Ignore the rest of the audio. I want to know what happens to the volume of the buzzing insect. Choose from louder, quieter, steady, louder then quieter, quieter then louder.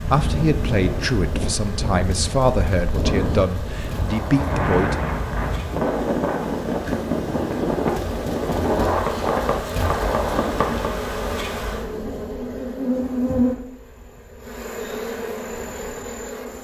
louder.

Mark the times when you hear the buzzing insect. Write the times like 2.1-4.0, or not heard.
0.0-16.5.